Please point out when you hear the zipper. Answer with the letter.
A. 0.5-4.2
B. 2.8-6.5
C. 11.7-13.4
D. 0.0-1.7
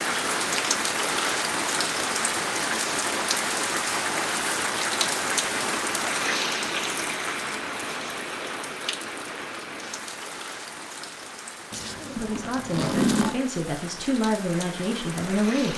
C.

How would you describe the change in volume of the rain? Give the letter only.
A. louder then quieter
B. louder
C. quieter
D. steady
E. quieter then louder
C.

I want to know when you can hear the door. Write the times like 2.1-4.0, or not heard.
not heard.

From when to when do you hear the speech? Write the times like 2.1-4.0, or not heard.
11.9-15.7.